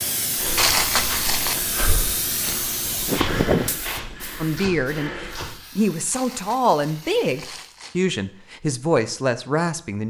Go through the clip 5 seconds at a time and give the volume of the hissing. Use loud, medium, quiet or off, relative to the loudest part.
loud, quiet.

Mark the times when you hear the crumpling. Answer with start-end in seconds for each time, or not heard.
0.6-1.6, 6.1-8.0.